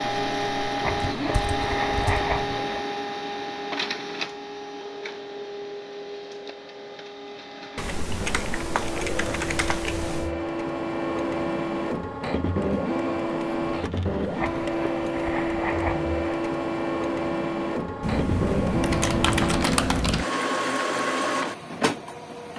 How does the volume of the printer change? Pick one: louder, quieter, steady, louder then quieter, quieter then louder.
quieter then louder.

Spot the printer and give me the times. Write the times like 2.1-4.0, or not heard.
0.0-22.5.